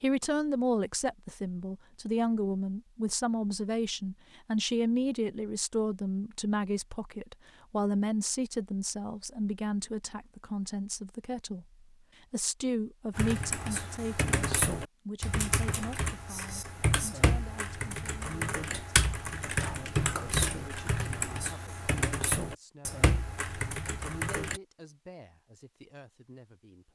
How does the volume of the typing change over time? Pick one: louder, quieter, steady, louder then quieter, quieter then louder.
steady.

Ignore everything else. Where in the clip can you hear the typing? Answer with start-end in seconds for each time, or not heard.
13.2-24.6.